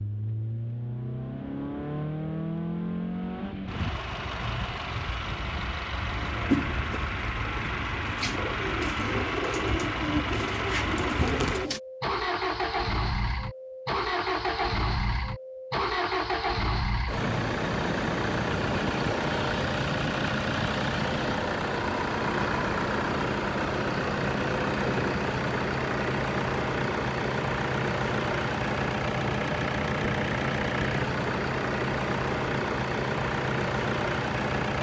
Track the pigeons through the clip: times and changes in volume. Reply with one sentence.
The pigeons can be heard from 6.1 to 11.8 s, getting quieter then louder.